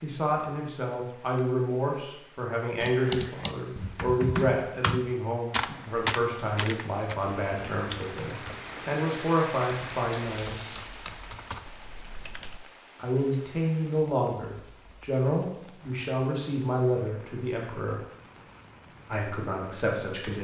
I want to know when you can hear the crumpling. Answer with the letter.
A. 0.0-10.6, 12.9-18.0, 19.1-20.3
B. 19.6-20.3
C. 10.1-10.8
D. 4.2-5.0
C.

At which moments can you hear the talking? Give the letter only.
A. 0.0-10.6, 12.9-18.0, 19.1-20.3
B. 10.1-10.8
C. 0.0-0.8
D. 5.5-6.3
A.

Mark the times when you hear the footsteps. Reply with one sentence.
You can't hear the footsteps here.